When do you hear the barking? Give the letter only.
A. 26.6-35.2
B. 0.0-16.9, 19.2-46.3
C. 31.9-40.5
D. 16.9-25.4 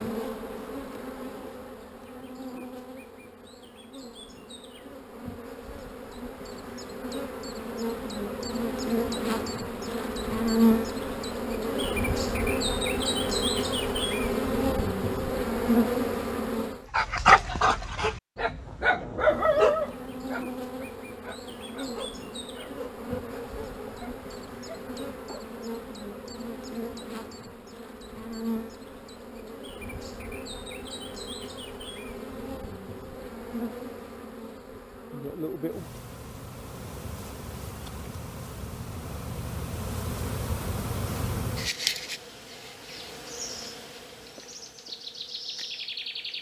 D.